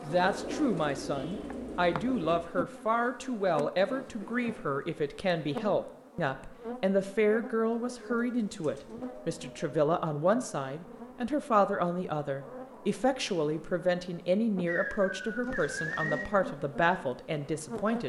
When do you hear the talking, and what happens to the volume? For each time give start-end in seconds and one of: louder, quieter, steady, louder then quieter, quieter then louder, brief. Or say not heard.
0.0-18.0 steady.